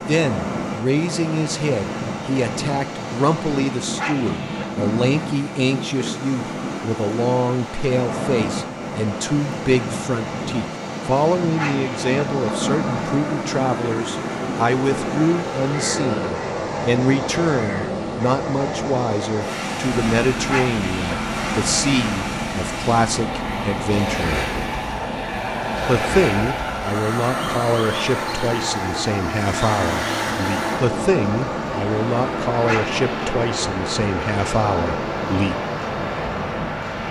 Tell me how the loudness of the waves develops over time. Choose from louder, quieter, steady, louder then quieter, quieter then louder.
steady.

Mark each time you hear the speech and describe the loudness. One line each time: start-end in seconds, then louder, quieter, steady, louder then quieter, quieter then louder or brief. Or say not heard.
0.1-24.5 steady
25.9-35.5 steady.